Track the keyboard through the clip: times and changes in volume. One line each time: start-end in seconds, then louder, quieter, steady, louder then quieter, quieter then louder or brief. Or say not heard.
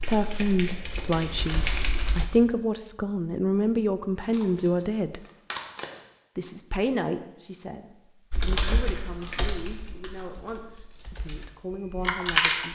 0.1-2.3 brief
8.3-12.6 quieter then louder.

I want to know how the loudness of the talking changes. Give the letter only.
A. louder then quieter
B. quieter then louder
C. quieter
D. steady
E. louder
C.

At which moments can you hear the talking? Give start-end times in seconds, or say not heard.
0.0-5.2, 6.3-12.6.